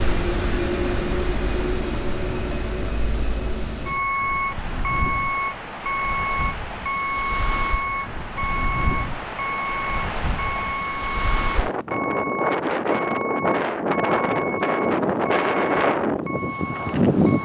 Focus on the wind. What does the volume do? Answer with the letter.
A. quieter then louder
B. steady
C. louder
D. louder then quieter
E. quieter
C.